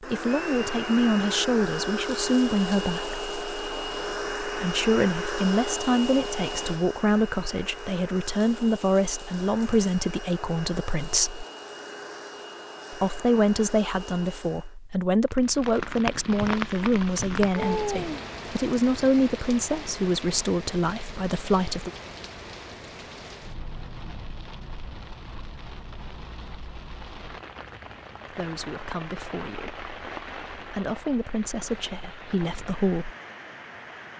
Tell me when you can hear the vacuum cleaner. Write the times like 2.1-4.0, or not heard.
0.0-14.8.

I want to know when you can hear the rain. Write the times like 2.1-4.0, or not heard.
15.3-34.1.